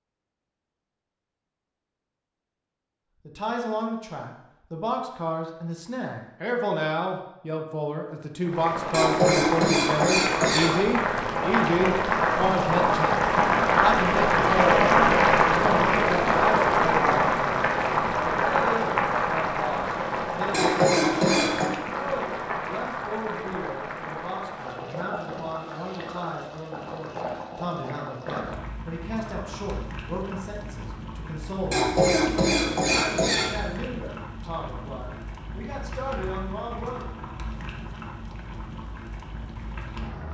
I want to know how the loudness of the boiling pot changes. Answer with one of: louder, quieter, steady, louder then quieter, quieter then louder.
quieter.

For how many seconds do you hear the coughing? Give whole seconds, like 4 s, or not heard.
5 s.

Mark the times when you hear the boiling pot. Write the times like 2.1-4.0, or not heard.
8.4-40.2.